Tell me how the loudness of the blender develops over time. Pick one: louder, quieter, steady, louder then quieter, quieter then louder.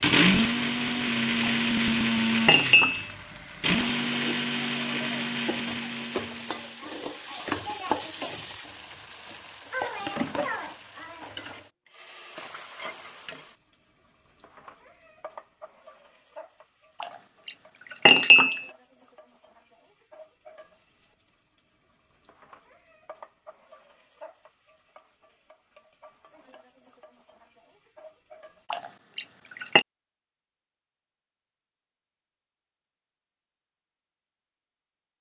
quieter.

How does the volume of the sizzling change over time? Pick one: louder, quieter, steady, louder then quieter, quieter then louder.
quieter.